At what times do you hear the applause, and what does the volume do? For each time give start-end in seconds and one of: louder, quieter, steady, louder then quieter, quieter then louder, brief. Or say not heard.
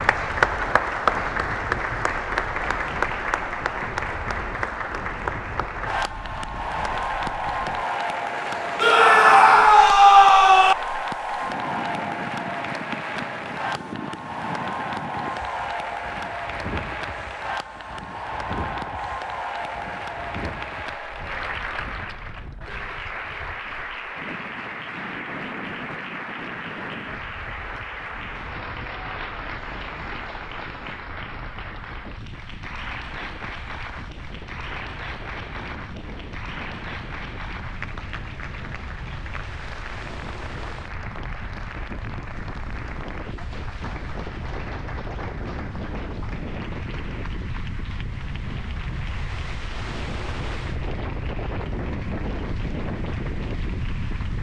0.0-54.3 quieter.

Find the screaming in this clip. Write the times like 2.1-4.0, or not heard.
8.8-10.8.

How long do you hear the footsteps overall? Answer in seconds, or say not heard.
not heard.